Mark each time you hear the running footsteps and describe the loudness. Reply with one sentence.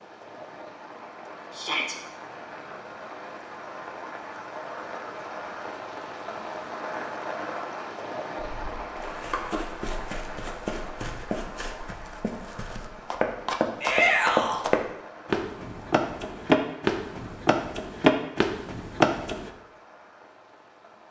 You can hear the running footsteps from 8.4 to 19.5 s, getting louder.